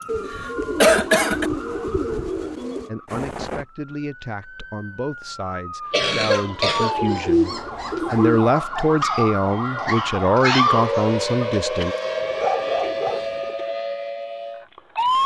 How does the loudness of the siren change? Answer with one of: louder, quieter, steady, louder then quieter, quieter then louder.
louder.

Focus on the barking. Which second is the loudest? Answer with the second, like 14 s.
11 s.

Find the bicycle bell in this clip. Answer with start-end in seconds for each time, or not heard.
not heard.